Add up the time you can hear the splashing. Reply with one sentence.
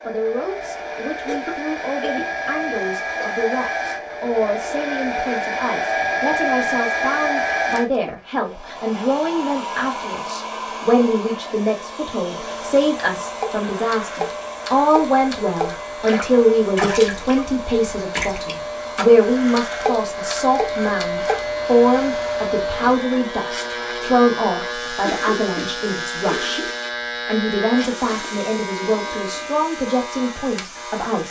The splashing can be heard for 8 seconds in total.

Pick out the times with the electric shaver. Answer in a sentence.
You can hear the electric shaver from 12.3 to 31.2 s.